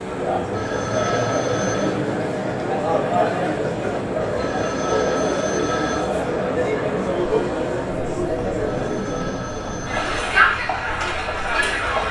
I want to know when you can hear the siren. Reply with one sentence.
You can't hear the siren here.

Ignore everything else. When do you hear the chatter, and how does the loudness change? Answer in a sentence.
The chatter can be heard from 0.0 to 12.0 s, at a steady volume.